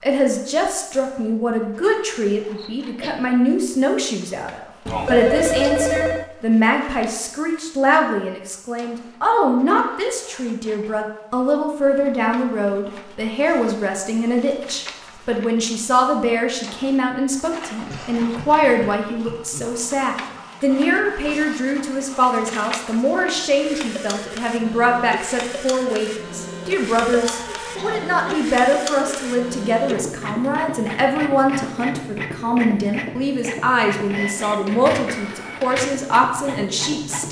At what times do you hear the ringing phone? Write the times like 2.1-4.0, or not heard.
4.8-6.3, 27.2-27.8.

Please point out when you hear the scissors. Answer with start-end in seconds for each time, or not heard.
not heard.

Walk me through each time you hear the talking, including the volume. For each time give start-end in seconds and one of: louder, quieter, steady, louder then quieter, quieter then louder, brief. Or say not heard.
0.0-37.2 steady.